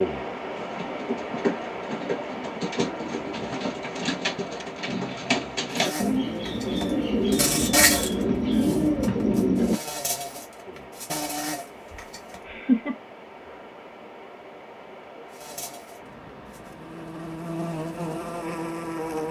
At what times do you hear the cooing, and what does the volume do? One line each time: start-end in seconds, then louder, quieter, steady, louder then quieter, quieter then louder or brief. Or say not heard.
0.5-9.8 louder.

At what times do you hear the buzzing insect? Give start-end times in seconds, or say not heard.
5.7-12.4, 15.3-19.2.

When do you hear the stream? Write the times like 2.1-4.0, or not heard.
0.0-19.2.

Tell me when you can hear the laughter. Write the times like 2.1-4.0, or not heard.
11.9-12.9.